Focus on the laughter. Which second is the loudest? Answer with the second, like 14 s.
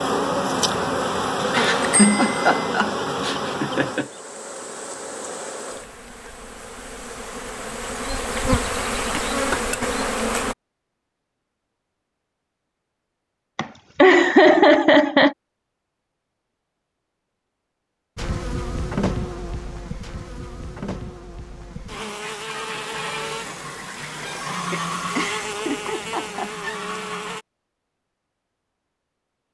15 s.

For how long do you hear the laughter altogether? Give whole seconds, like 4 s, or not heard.
6 s.